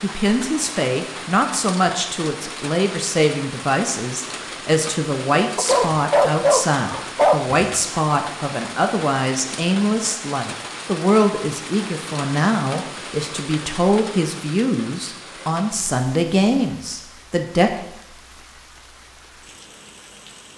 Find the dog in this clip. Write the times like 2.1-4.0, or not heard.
5.5-7.8.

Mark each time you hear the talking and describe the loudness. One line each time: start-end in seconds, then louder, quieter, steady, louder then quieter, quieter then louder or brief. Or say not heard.
0.0-17.8 steady.